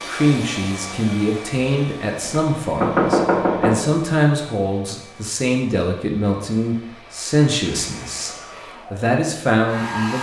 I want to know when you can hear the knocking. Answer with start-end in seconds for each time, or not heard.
2.2-3.9.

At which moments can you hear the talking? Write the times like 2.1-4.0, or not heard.
0.1-8.3, 8.9-10.1.